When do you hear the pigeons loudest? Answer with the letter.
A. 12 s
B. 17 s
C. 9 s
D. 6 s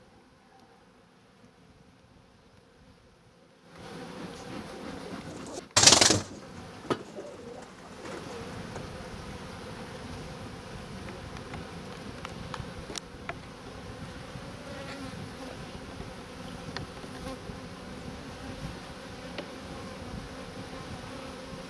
D.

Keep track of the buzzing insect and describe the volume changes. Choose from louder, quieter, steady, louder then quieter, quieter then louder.
louder.